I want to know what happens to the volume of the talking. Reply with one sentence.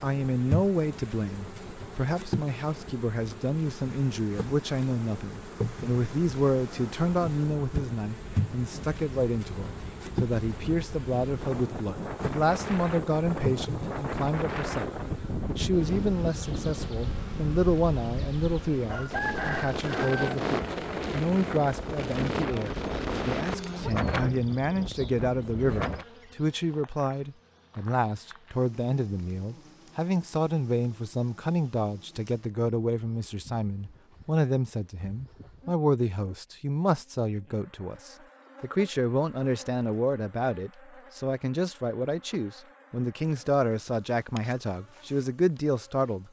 The volume of the talking stays about the same.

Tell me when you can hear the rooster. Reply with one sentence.
You can hear the rooster from 18.8 to 20.4 s.